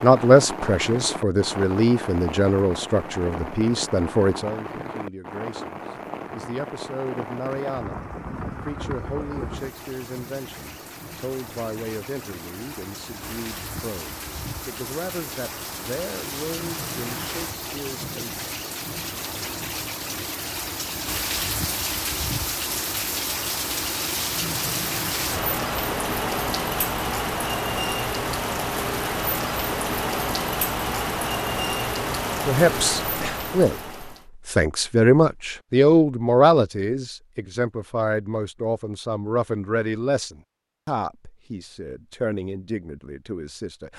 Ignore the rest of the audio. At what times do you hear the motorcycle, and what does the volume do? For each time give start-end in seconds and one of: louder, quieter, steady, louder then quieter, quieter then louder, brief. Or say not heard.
not heard.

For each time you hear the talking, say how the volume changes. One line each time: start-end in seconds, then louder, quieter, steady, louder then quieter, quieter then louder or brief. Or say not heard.
0.0-18.4 quieter
32.5-33.8 brief
34.5-43.9 quieter.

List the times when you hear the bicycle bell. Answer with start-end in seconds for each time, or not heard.
not heard.